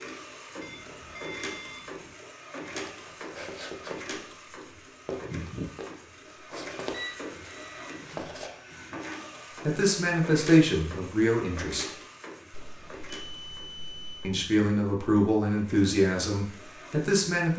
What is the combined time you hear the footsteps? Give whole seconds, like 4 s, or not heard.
6 s.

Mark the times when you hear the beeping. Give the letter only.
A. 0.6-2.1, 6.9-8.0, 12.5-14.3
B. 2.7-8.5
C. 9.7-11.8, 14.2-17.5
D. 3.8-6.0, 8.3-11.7
A.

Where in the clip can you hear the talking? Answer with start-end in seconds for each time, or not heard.
9.7-11.8, 14.2-17.5.